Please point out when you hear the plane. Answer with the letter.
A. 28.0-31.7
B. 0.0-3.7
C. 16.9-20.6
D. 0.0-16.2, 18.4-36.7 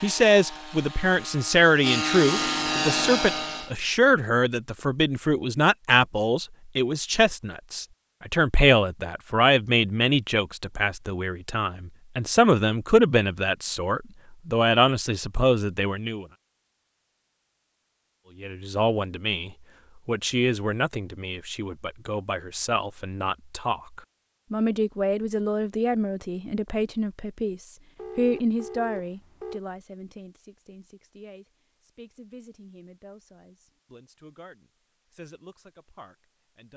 B.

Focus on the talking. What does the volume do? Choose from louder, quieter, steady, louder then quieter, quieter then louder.
quieter.